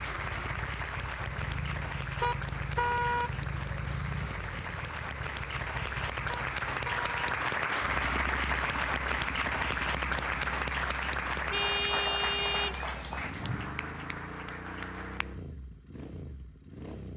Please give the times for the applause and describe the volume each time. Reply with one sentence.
The applause can be heard from 0.0 to 15.4 s, getting louder then quieter.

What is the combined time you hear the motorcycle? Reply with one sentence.
The motorcycle can be heard for 17 seconds in total.